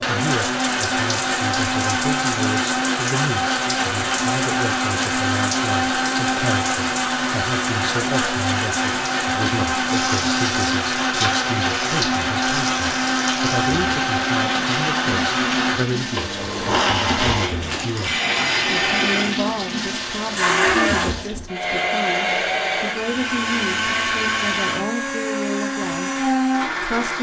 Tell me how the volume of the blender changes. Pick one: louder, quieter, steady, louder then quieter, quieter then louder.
steady.